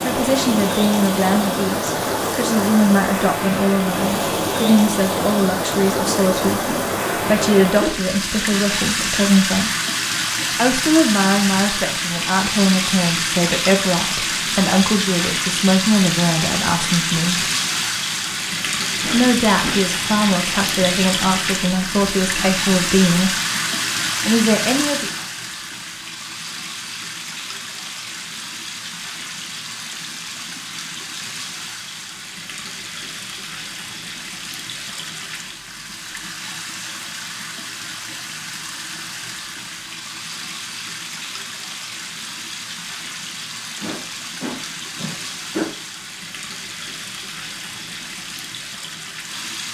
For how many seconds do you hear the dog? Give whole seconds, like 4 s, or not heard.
not heard.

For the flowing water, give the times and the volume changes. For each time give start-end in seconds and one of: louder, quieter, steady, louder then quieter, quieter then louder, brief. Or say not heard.
0.0-49.6 quieter.